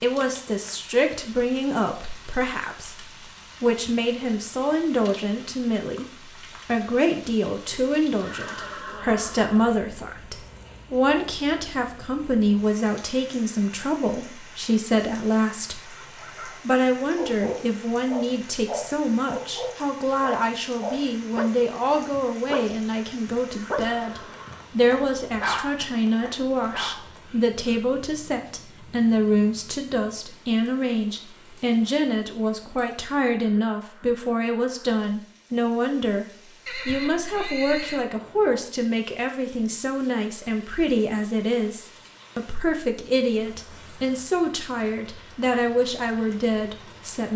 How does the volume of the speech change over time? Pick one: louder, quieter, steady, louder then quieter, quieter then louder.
steady.